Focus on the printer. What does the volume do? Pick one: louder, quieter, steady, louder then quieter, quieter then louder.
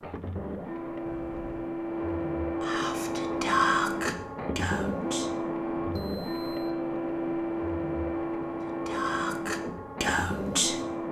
steady.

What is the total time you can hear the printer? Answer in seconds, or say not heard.
11 s.